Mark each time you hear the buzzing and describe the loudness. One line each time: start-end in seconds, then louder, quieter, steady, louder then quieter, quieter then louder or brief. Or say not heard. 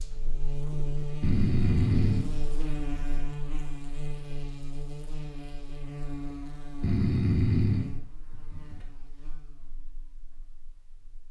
0.0-11.2 quieter.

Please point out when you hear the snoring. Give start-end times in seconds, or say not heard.
1.2-3.2, 6.8-8.8.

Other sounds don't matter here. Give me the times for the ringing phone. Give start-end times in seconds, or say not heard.
not heard.